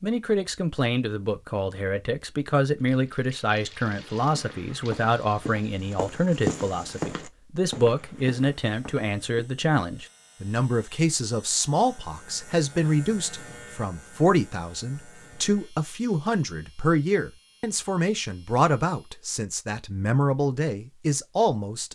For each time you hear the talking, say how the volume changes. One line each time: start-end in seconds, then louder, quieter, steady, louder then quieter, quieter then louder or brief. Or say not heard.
0.0-21.9 steady.